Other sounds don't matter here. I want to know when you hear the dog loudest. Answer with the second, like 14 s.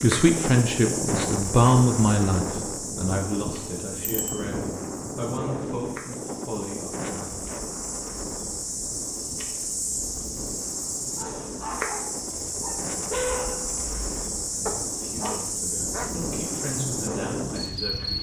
13 s.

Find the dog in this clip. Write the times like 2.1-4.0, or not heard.
11.2-16.1.